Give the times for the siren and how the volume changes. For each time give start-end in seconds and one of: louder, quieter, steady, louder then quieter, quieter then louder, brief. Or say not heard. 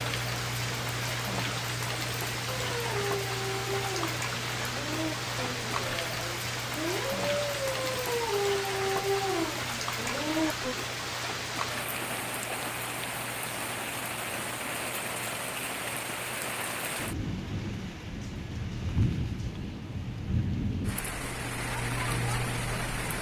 not heard.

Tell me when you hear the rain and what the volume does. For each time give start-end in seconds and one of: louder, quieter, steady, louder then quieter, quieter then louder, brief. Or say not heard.
0.0-23.1 steady.